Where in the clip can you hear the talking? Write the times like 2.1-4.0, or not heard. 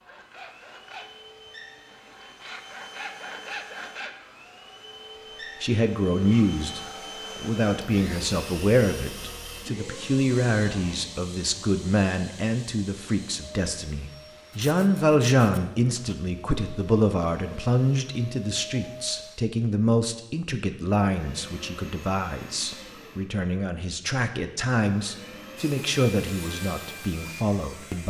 5.6-28.0.